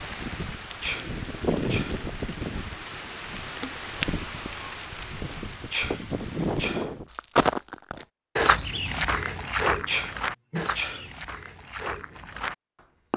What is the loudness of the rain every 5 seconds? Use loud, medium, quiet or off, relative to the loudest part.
loud, loud, off.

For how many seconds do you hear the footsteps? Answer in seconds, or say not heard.
6 s.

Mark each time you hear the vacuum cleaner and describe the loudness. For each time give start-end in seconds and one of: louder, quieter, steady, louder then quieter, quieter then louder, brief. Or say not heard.
not heard.